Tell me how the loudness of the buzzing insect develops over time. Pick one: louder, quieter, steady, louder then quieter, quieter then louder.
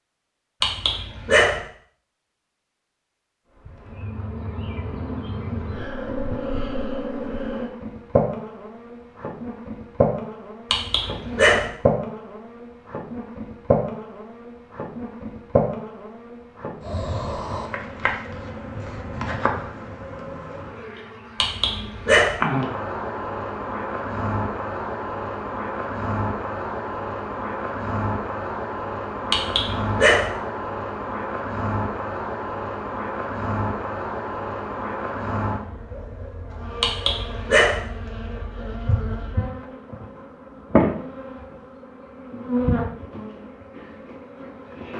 steady.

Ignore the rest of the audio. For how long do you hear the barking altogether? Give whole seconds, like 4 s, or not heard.
5 s.